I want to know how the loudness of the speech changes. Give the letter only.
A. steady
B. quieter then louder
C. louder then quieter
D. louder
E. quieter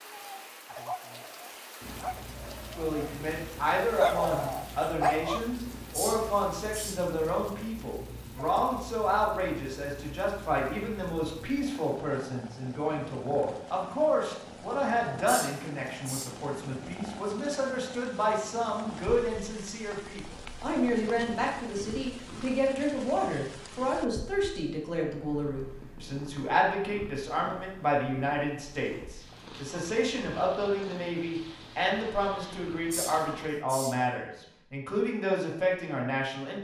A.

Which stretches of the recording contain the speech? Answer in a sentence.
The speech can be heard from 2.7 to 36.5 s.